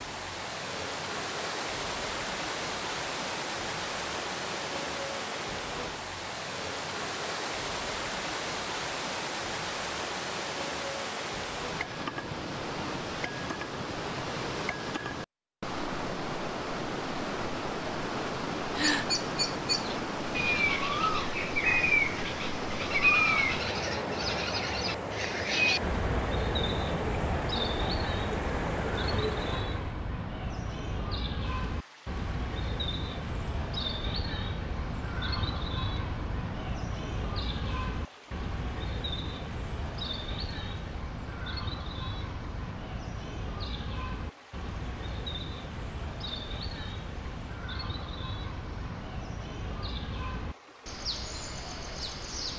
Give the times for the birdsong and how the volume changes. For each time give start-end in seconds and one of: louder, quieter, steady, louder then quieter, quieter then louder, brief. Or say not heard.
18.6-52.5 quieter.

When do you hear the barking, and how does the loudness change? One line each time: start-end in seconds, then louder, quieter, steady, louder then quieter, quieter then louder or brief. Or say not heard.
not heard.